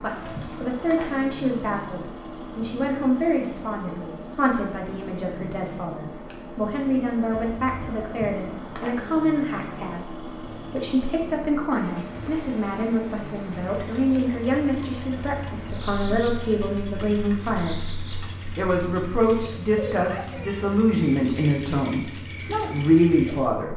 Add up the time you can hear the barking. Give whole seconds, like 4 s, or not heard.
not heard.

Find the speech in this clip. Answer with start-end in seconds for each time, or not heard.
0.0-17.9, 18.6-23.7.